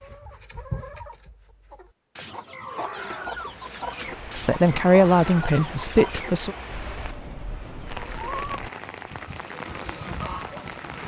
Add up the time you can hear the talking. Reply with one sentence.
You can hear the talking for 2 seconds altogether.